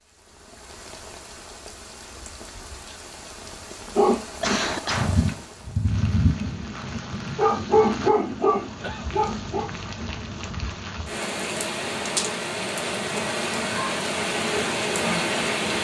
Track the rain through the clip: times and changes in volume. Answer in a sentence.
You can hear the rain from 0.0 to 15.8 s, getting louder.